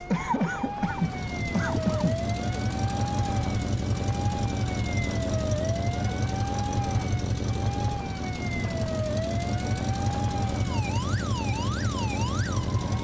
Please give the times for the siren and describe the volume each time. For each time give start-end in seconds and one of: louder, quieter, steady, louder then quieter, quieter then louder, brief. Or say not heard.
0.0-12.9 steady.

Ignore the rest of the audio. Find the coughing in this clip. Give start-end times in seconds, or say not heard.
0.1-2.2.